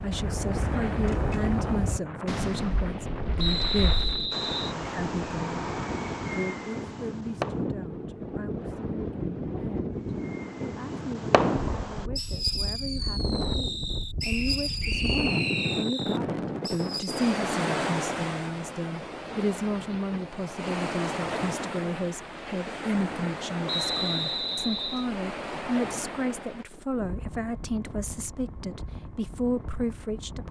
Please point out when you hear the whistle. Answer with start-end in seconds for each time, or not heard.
3.4-4.8, 14.2-15.8, 23.6-25.1.